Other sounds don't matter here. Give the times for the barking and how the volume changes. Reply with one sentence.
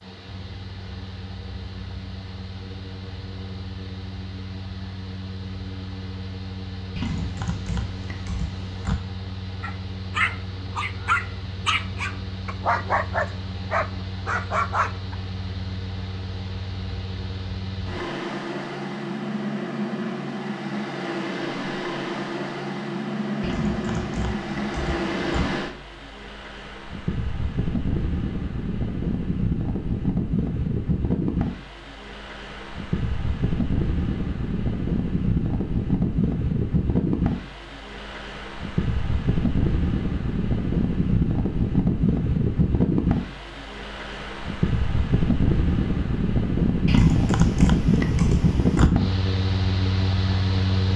The barking can be heard from 9.6 to 15.2 s, at a steady volume.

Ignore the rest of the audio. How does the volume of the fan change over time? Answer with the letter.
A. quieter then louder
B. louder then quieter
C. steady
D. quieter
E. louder
E.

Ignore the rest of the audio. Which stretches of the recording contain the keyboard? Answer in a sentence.
The keyboard can be heard from 7.0 to 8.9 s, from 23.4 to 25.4 s and from 46.9 to 48.9 s.